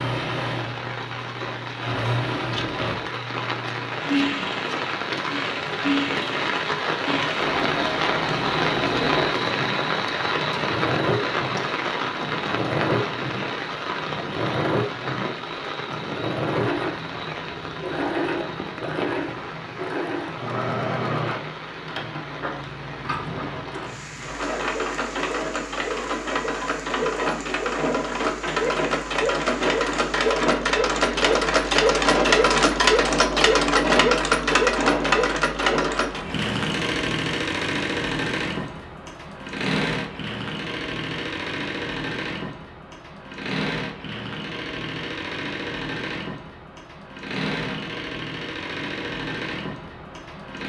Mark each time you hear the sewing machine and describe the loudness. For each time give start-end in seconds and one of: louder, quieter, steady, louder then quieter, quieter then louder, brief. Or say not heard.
0.0-50.6 louder then quieter.